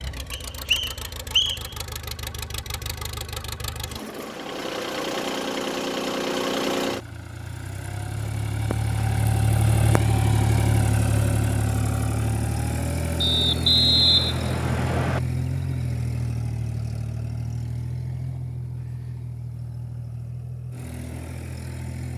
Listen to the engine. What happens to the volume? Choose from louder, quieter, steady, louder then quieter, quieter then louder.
louder then quieter.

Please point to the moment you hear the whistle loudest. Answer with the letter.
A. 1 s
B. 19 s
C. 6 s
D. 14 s
D.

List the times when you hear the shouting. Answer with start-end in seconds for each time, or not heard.
not heard.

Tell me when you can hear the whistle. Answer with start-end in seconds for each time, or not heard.
0.3-1.8, 13.2-15.2.